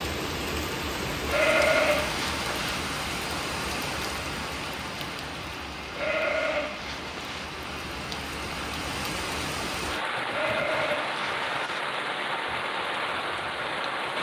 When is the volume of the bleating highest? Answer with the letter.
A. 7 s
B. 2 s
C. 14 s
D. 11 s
B.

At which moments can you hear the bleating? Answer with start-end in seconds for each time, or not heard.
1.2-2.8, 5.9-7.5, 10.2-11.8.